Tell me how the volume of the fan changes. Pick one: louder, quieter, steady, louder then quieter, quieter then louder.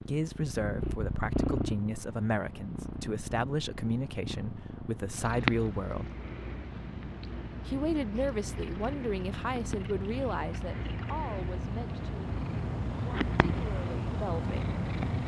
louder.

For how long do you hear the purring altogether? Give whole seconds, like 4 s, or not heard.
15 s.